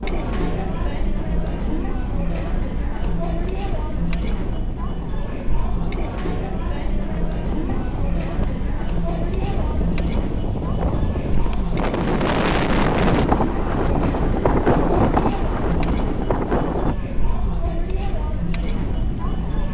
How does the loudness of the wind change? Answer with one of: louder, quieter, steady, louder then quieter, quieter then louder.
louder then quieter.